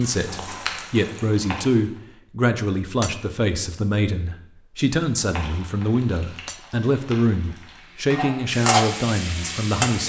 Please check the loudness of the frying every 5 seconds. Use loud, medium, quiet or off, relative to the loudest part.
medium, loud.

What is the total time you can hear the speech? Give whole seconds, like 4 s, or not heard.
10 s.